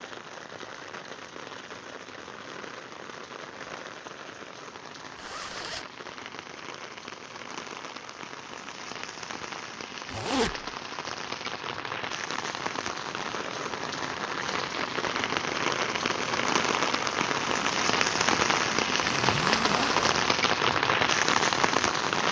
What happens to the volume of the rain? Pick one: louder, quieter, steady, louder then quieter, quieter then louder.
louder.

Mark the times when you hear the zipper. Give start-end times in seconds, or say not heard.
5.2-5.8, 10.1-10.7, 18.9-20.2.